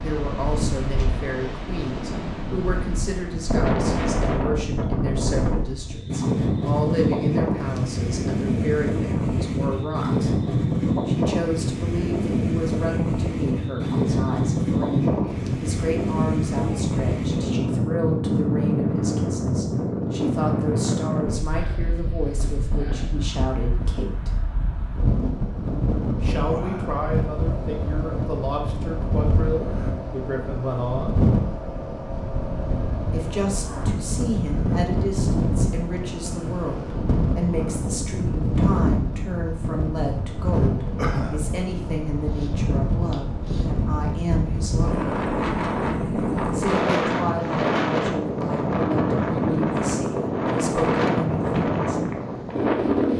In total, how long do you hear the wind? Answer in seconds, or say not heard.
53 s.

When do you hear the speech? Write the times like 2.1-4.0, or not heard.
0.0-10.3, 11.1-24.4, 26.2-31.2, 33.1-45.1, 46.5-52.1.